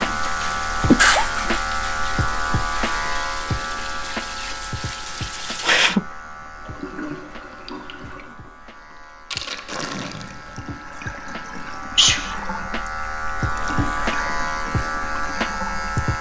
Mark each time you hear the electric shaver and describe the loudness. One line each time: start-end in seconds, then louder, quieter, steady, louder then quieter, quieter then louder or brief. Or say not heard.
0.0-16.1 quieter then louder.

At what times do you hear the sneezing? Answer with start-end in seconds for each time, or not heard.
0.4-1.6, 5.6-6.0, 11.9-12.3.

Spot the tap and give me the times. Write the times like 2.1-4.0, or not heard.
0.0-16.1.